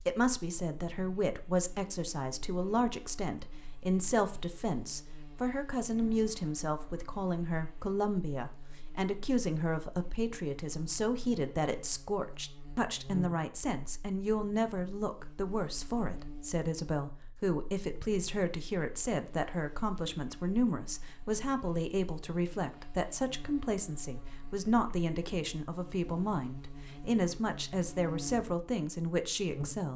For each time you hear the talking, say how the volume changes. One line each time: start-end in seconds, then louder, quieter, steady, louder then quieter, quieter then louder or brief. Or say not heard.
0.0-29.9 steady.